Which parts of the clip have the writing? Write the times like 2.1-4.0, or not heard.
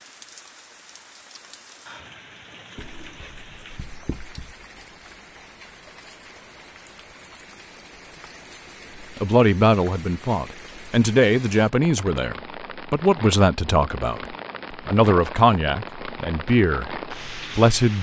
2.8-4.5.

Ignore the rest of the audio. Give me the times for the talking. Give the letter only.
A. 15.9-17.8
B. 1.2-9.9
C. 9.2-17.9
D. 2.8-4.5
C.